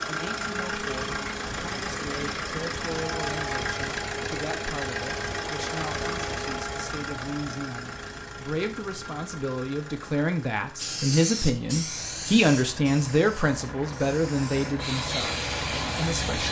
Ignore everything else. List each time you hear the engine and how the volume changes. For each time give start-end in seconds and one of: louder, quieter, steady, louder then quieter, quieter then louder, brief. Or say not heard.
0.0-16.4 quieter then louder.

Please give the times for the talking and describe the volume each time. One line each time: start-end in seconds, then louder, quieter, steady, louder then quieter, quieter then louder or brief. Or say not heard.
0.1-16.4 louder.